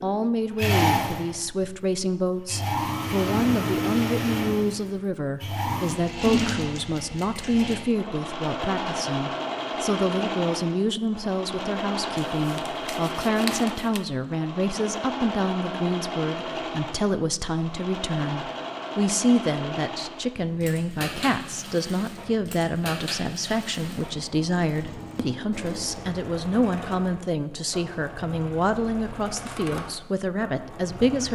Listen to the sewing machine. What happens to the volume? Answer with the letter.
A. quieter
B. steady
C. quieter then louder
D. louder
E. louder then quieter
A.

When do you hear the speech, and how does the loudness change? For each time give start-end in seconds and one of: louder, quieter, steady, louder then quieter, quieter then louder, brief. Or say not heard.
0.0-31.3 steady.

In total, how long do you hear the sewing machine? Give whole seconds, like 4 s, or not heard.
31 s.